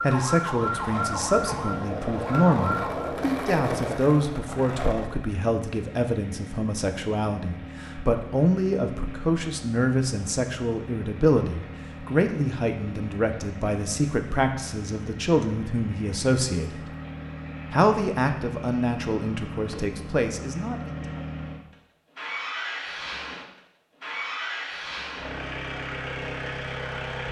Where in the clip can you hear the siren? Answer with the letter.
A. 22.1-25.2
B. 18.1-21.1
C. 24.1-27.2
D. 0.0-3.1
D.